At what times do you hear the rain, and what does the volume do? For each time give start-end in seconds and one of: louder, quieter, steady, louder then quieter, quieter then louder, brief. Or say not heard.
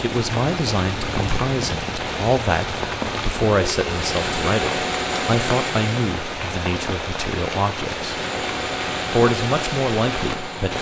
0.0-10.7 steady.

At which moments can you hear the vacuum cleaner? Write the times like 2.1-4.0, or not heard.
3.8-6.1, 8.0-10.7.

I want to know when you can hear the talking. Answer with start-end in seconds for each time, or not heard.
0.0-8.2, 9.1-10.7.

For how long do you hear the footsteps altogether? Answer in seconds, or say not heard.
not heard.